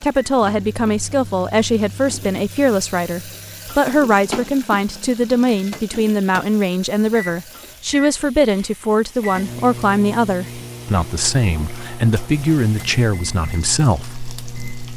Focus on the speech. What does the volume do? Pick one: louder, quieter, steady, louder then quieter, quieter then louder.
steady.